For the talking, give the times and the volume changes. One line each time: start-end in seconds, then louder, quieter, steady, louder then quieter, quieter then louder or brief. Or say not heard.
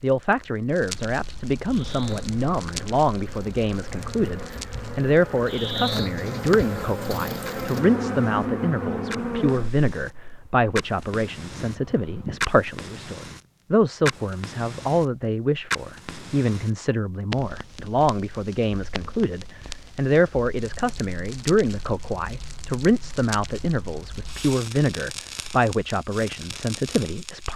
0.0-27.5 steady.